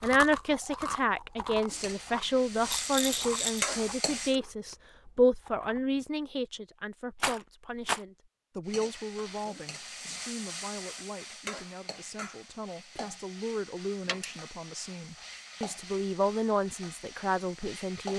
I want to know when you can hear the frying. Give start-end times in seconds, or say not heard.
1.7-4.3, 8.7-18.1.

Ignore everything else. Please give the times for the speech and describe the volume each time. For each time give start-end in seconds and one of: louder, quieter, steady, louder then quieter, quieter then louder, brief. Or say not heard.
0.0-18.1 quieter then louder.